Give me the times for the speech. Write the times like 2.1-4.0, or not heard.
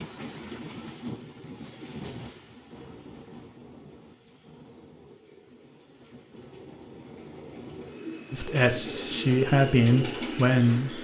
8.3-10.9.